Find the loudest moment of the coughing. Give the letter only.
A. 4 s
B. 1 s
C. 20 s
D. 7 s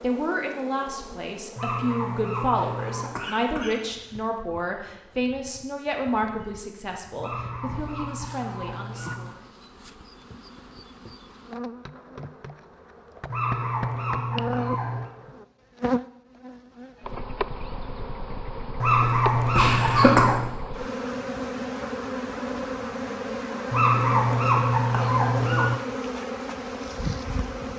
C.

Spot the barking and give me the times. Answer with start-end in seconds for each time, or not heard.
1.6-3.2, 7.2-9.3, 13.3-15.1, 18.8-20.6, 23.7-25.8.